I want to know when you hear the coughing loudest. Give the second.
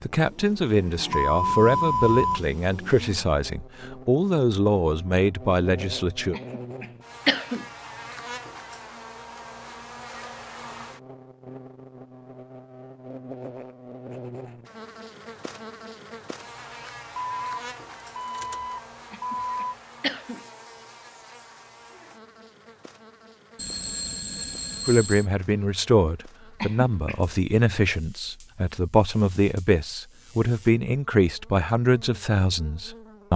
7 s.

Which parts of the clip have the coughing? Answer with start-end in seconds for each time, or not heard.
6.3-7.7, 19.1-20.4, 26.6-27.2.